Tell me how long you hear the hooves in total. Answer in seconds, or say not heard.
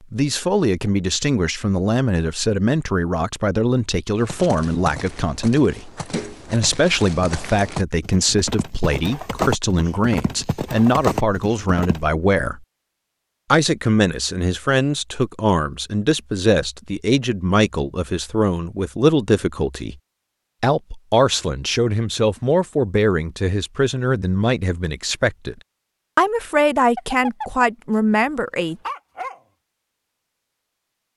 8 s.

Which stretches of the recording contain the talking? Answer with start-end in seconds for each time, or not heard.
0.1-12.6, 13.5-19.9, 20.6-25.6, 26.1-28.8.